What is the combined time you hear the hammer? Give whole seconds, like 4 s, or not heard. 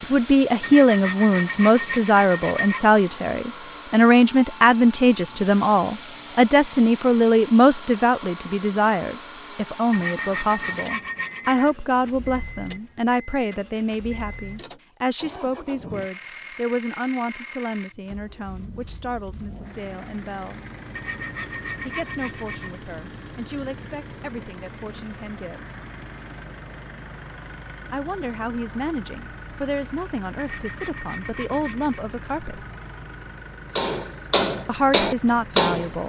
2 s.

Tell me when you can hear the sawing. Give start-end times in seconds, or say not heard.
0.6-2.9, 9.9-11.7, 20.9-22.8, 30.4-32.0.